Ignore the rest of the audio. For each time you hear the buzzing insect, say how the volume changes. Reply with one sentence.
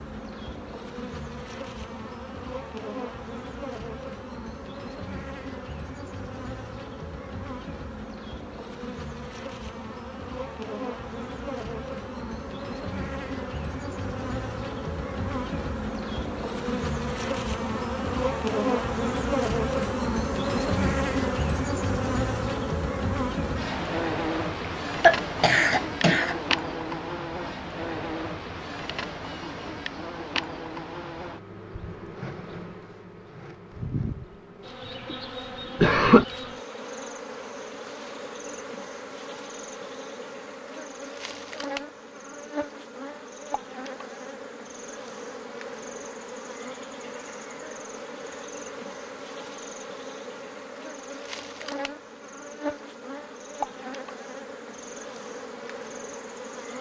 You can hear the buzzing insect from 0.0 to 56.7 s, getting louder then quieter.